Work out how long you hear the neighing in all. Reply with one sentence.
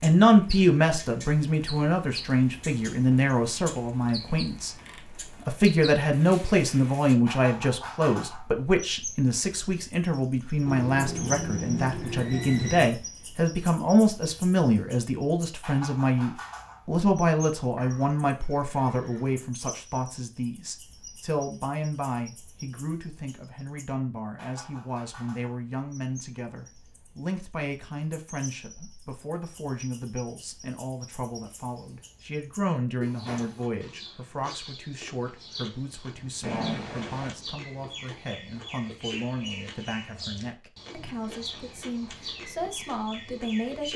You can hear the neighing for 5 seconds altogether.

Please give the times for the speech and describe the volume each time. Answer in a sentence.
The speech can be heard from 0.0 to 4.8 s, getting quieter; and from 5.5 to 43.9 s, getting quieter.